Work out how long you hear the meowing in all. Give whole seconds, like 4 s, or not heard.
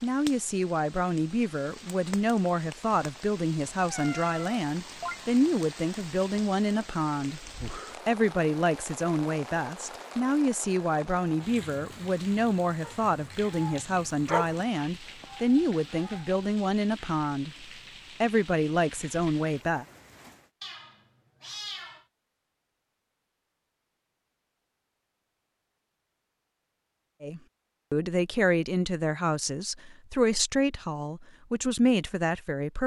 3 s.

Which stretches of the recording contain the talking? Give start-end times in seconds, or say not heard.
0.0-7.4, 8.1-17.6, 18.2-19.9, 27.2-32.8.